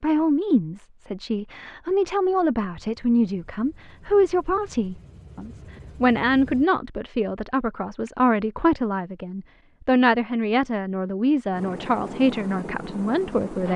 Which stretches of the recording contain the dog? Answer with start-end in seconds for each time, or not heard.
not heard.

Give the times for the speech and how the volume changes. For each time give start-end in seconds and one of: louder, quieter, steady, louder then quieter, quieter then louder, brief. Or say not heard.
0.0-13.7 steady.